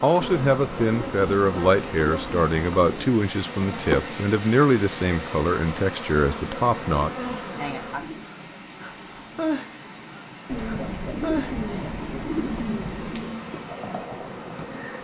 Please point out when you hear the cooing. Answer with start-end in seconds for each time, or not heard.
0.2-3.1, 6.2-8.2, 10.4-13.3.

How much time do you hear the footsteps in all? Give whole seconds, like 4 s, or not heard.
not heard.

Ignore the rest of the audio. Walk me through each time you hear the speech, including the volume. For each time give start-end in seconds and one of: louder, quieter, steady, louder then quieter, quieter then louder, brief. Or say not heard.
0.0-7.1 steady.